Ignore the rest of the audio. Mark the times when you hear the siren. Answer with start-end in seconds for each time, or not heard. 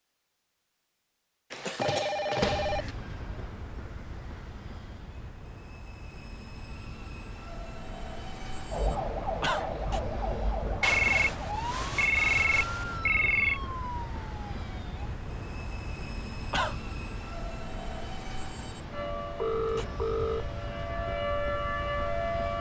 8.7-15.1, 18.9-22.5.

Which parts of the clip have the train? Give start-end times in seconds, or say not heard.
2.4-22.5.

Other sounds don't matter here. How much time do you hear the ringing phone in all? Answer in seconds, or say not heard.
5 s.